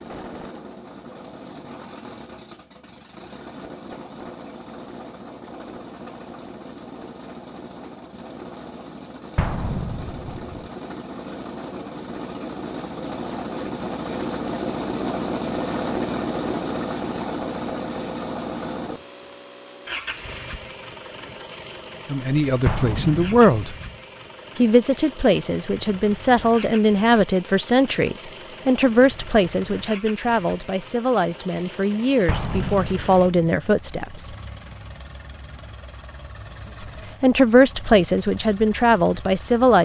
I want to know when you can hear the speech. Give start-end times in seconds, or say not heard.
22.1-23.8, 24.6-34.3, 36.8-39.8.